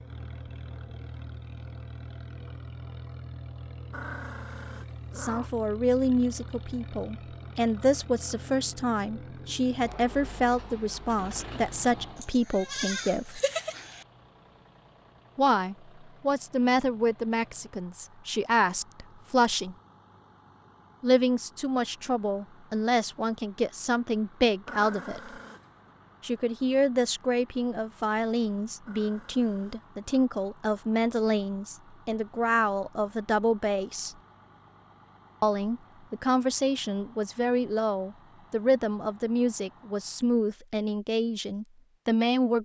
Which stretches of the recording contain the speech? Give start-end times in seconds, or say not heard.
5.2-13.4, 15.3-19.8, 21.0-25.3, 26.2-34.1, 35.4-42.6.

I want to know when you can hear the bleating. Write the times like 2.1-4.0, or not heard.
12.2-14.1.